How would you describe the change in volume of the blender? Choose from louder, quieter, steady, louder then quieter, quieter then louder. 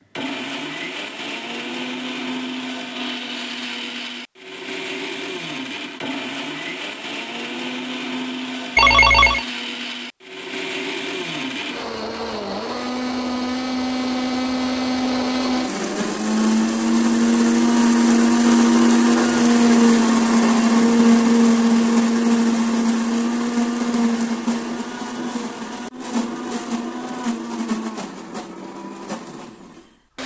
louder then quieter.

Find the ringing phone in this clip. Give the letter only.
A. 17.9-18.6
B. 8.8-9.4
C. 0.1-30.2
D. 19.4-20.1
B.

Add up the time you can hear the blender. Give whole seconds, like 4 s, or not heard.
30 s.